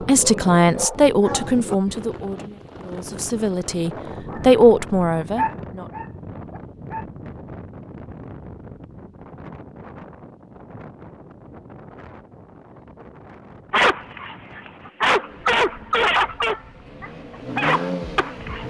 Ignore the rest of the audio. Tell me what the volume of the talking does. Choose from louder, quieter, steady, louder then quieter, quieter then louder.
quieter then louder.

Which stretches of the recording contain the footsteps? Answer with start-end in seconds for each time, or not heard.
not heard.